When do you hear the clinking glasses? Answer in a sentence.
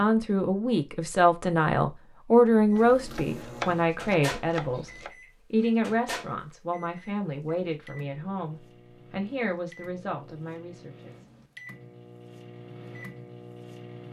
The clinking glasses can't be heard in this clip.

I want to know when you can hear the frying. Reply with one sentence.
You can't hear the frying here.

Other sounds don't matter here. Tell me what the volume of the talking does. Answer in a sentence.
The loudness of the talking goes down.